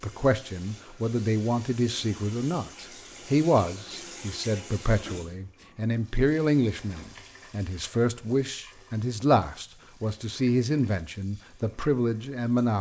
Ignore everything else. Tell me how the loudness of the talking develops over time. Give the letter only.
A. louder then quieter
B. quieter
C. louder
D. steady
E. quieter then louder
D.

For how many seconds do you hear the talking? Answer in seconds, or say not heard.
13 s.